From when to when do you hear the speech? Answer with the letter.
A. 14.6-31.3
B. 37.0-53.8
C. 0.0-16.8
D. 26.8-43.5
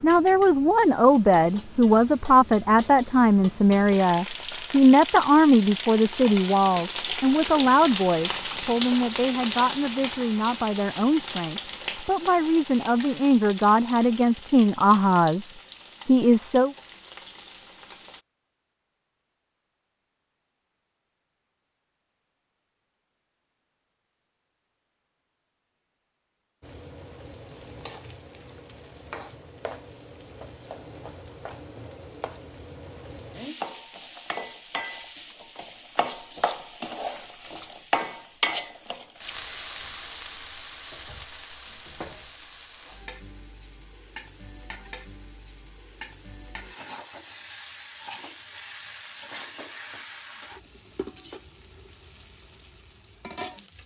C.